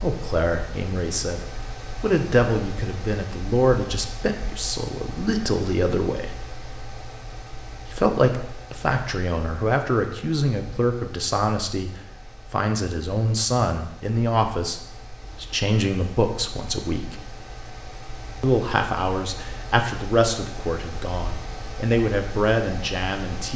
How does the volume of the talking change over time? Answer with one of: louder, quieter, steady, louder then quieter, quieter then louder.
steady.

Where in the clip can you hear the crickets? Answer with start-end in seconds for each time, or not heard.
not heard.